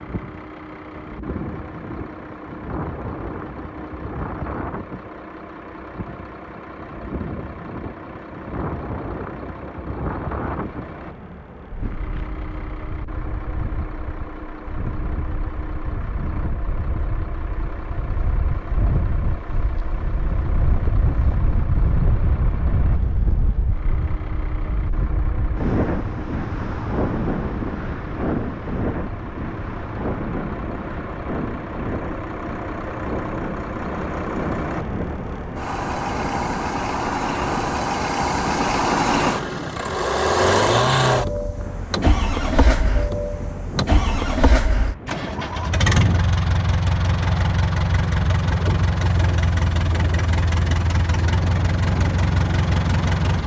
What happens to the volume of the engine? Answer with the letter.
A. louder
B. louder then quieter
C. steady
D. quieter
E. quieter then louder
A.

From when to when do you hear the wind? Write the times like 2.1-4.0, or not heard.
0.0-53.4.